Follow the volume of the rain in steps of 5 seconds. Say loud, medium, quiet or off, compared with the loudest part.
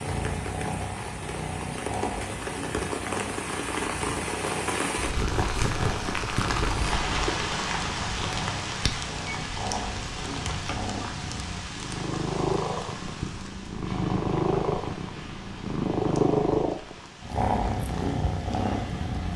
loud, loud, medium, quiet.